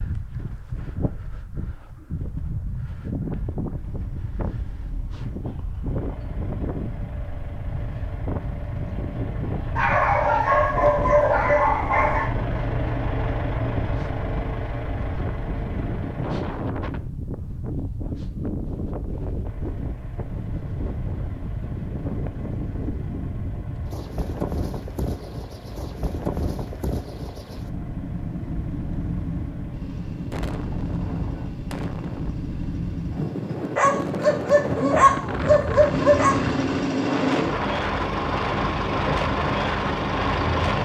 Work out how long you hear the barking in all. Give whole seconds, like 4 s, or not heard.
5 s.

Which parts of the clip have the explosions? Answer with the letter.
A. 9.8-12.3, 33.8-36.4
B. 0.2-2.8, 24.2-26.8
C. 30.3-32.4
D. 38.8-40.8
C.